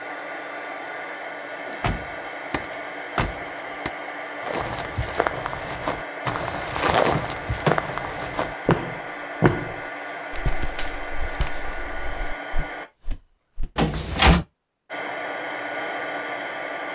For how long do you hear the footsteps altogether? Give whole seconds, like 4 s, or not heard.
9 s.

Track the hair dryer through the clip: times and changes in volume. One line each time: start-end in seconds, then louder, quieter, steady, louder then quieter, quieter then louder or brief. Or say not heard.
0.0-12.9 steady
14.8-16.8 brief.